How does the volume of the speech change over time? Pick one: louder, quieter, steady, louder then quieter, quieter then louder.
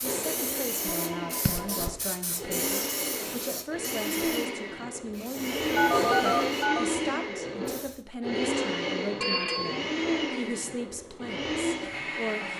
steady.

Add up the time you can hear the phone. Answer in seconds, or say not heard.
3 s.